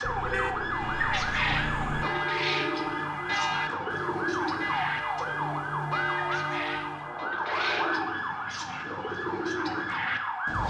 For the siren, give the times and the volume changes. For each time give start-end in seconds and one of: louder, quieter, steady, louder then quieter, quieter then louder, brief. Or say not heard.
0.0-10.6 steady.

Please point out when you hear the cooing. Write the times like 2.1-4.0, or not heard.
0.0-10.6.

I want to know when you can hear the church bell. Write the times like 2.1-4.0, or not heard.
0.7-7.3.